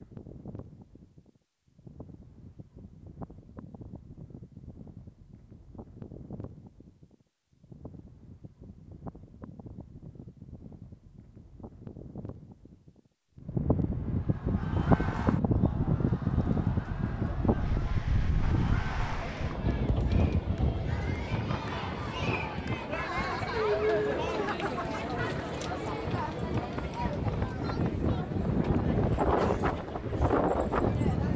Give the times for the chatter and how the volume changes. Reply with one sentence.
You can hear the chatter from 14.1 to 31.3 s, getting louder then quieter.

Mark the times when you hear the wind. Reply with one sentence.
The wind can be heard from 0.0 to 31.3 s.